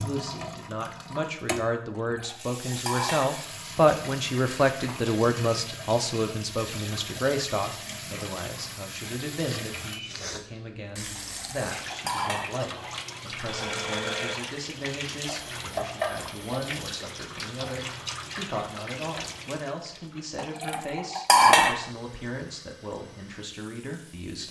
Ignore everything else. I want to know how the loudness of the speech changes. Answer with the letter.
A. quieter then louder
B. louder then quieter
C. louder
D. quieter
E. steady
D.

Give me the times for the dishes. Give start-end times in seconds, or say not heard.
1.9-3.4, 11.2-12.7, 20.4-21.9.